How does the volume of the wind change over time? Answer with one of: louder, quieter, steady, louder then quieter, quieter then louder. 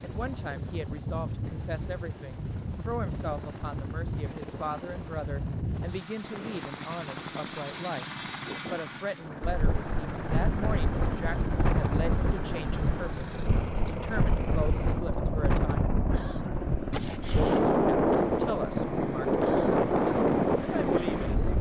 louder.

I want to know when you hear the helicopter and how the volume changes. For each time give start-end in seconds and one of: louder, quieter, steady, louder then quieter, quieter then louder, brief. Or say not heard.
0.0-21.5 steady.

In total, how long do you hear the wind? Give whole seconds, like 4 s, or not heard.
12 s.